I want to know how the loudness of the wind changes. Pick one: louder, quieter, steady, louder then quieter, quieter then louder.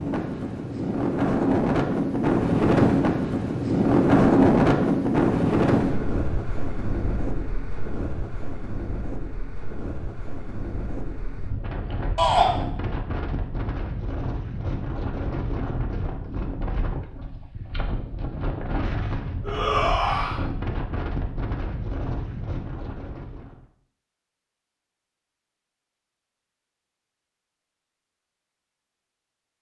quieter.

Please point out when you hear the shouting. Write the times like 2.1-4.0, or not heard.
12.2-12.6, 19.4-20.4.